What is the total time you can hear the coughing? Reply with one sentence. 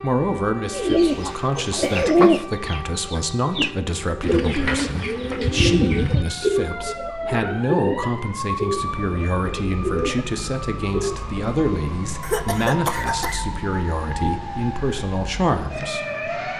The coughing can be heard for 3 seconds in total.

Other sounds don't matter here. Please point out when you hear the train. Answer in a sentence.
You can't hear the train here.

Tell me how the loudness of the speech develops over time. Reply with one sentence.
The loudness of the speech stays about the same.